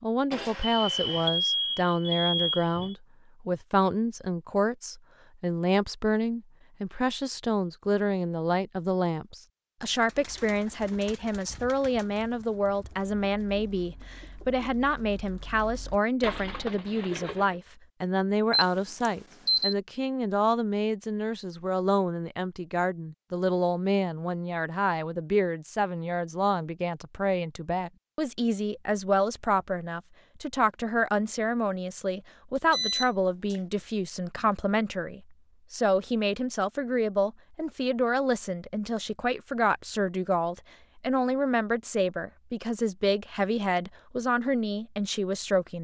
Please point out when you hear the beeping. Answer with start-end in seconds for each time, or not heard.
0.3-3.0, 18.5-19.8, 32.5-33.6.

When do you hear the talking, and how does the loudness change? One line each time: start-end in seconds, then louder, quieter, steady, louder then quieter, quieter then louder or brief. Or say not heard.
0.0-45.7 steady.